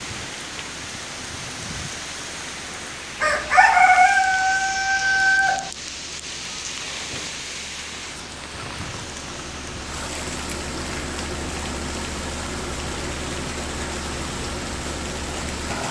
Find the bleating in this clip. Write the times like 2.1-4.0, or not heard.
not heard.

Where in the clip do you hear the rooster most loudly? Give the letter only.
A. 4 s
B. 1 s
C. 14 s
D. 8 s
A.